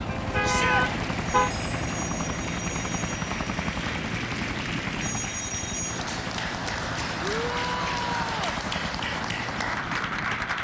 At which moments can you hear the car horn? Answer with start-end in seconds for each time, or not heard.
0.1-1.5.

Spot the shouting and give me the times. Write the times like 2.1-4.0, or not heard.
0.4-0.8, 7.2-8.6.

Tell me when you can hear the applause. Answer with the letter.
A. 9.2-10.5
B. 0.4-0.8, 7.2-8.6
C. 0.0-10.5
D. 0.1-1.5
C.